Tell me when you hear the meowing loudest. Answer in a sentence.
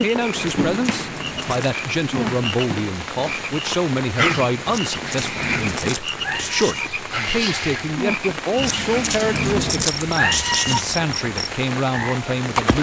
The volume of the meowing peaks at 10 seconds.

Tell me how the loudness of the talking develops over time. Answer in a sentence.
The volume of the talking stays about the same.